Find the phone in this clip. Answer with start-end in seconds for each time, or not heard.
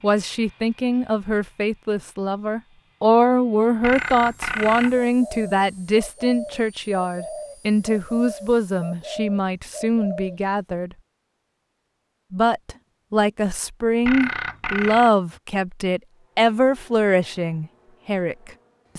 3.8-5.0, 14.1-15.1.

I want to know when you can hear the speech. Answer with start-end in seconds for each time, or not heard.
0.0-10.9, 12.3-18.9.